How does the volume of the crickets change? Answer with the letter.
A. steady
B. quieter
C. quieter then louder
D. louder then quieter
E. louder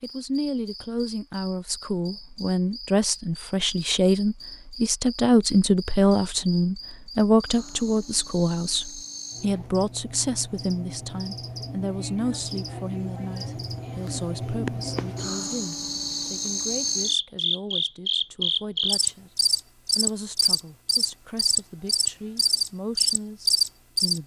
E.